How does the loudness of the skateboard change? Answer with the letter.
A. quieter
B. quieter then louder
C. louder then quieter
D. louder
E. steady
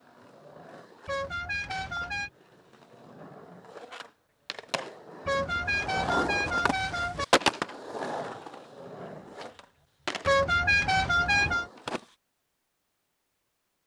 C.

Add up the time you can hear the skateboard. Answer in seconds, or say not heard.
12 s.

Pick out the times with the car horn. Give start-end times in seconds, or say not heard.
1.1-2.3, 5.2-7.2, 10.2-11.7.